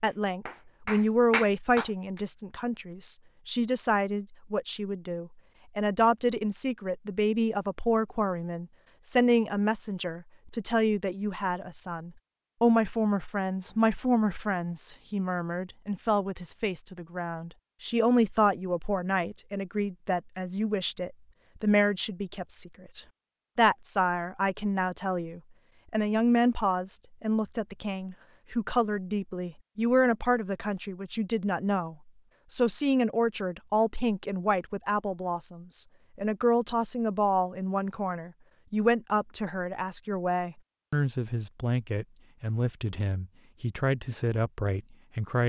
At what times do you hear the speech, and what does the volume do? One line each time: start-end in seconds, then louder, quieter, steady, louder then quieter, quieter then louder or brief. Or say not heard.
0.0-45.4 steady.